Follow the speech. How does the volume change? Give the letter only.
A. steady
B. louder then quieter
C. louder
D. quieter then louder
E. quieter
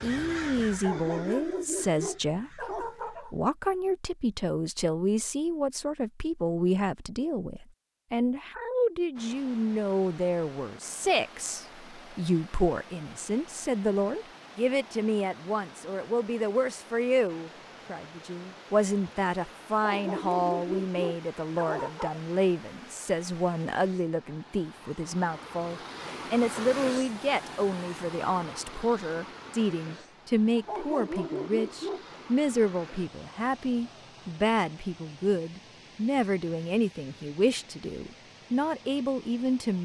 A.